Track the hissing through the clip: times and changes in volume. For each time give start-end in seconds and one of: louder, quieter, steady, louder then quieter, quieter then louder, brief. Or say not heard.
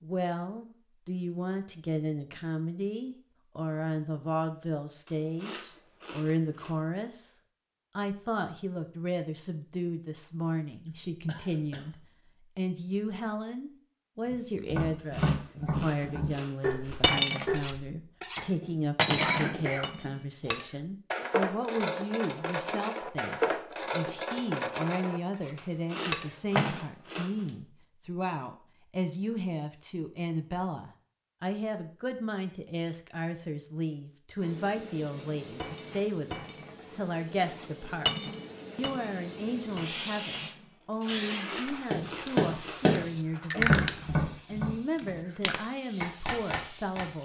34.4-47.2 louder then quieter.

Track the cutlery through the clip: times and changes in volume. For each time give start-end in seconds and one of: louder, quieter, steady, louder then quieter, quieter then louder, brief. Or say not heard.
17.0-26.8 quieter
35.5-44.1 louder then quieter.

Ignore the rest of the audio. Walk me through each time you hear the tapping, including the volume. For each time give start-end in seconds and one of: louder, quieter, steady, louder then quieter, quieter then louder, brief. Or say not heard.
14.3-19.7 quieter
41.9-47.0 quieter then louder.